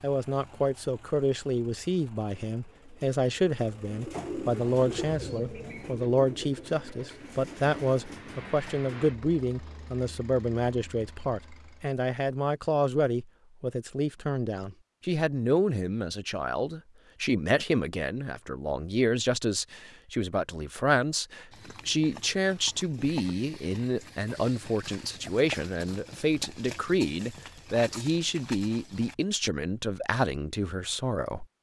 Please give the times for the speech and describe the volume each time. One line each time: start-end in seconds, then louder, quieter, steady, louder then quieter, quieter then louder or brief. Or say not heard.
0.0-31.4 steady.